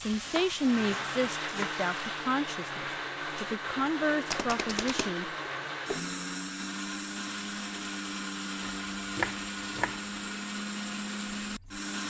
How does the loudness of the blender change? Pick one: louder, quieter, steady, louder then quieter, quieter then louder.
steady.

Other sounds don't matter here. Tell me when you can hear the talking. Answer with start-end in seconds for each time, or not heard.
0.0-5.3.